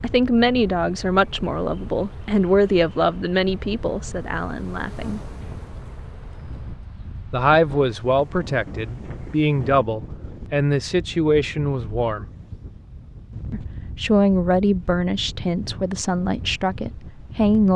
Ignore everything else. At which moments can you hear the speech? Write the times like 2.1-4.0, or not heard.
0.0-5.2, 7.3-12.2, 13.5-17.7.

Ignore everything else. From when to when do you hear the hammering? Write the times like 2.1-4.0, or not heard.
not heard.